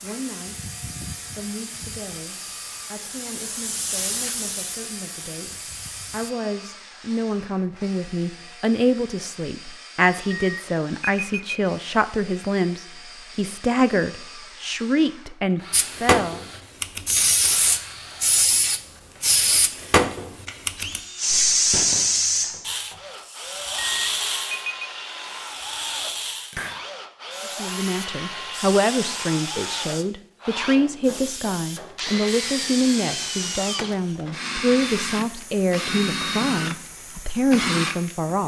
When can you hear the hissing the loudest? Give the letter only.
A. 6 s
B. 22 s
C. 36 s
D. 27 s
B.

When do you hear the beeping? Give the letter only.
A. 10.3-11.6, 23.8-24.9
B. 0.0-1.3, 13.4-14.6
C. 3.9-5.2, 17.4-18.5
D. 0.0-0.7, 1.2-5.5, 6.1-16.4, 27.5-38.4
A.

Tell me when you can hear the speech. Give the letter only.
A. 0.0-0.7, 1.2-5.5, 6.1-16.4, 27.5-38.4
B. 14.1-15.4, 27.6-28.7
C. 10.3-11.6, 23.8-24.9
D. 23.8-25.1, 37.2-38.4
A.